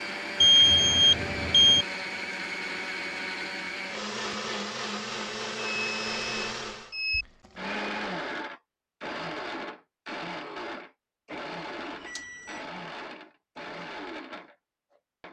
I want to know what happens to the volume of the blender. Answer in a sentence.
The loudness of the blender goes down.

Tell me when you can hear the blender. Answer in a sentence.
You can hear the blender from 0.0 to 15.2 s.